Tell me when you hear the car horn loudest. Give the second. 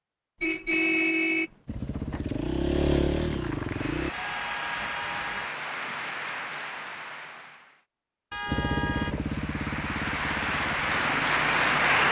1 s.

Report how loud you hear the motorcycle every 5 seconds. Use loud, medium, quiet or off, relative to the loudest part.
loud, loud, medium.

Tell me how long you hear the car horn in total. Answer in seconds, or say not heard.
4 s.